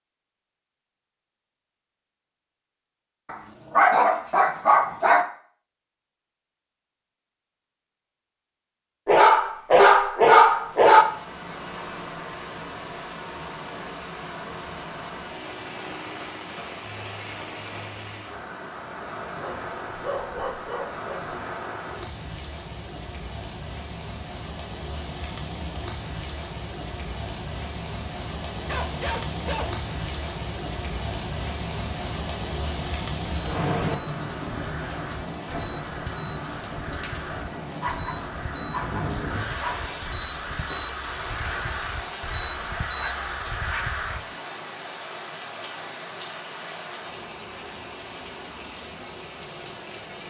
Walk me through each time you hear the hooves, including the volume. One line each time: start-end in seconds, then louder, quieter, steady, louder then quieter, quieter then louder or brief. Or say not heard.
not heard.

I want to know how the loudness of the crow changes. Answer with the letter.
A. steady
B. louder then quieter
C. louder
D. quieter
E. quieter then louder
C.